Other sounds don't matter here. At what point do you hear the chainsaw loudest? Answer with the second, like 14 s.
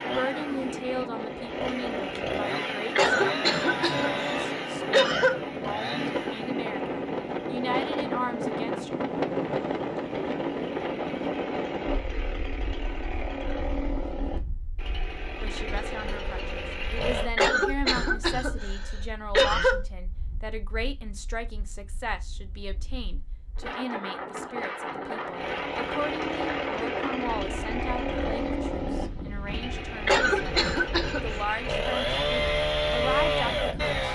33 s.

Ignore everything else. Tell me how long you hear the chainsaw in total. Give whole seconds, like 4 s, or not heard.
26 s.